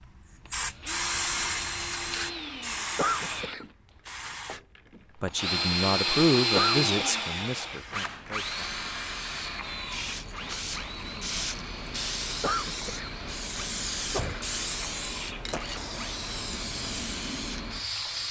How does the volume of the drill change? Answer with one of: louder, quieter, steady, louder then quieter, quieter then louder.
louder then quieter.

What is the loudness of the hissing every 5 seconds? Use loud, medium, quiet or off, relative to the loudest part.
loud, medium, loud, loud.